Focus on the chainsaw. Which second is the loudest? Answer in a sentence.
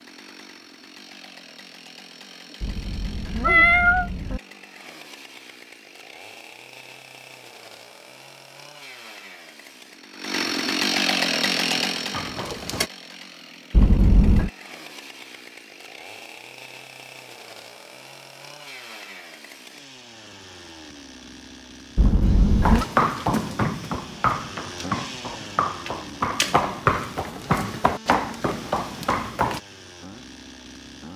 The loudest moment of the chainsaw is at 11 seconds.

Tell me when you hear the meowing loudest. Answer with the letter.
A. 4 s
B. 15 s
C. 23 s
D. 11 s
A.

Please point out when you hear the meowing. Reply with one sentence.
The meowing can be heard from 2.6 to 4.4 s, from 13.7 to 14.5 s and from 21.9 to 22.9 s.